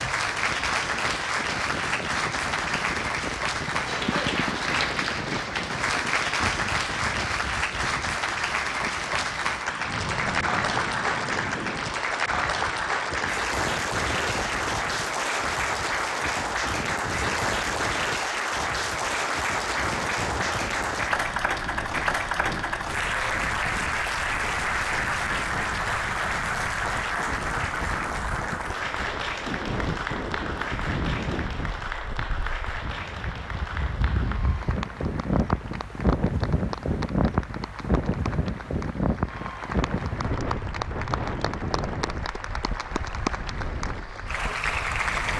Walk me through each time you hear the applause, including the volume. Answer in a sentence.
You can hear the applause from 0.0 to 45.3 s, getting quieter.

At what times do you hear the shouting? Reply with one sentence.
You can't hear the shouting here.